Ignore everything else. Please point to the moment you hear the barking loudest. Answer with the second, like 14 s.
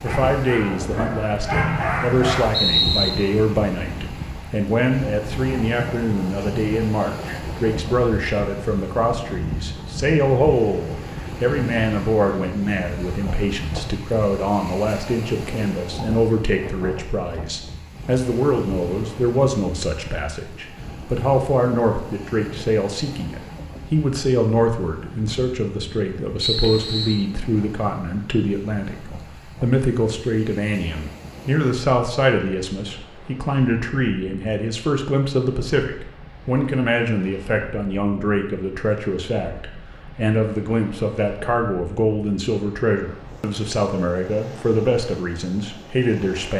2 s.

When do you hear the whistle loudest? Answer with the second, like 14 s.
3 s.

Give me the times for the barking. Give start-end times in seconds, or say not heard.
0.1-2.5.